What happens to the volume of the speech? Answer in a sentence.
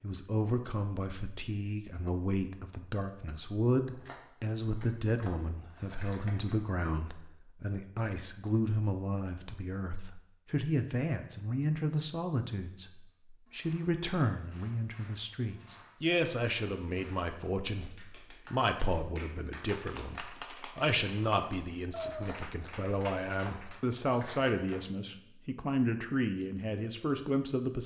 The loudness of the speech stays about the same.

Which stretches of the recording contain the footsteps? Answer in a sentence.
You can't hear the footsteps here.